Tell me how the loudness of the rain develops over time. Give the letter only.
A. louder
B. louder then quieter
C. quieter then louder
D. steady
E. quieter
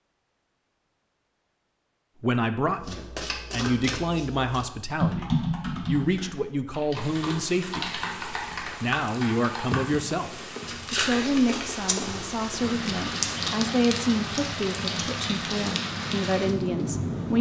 A.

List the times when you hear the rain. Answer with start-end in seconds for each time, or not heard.
7.0-17.3.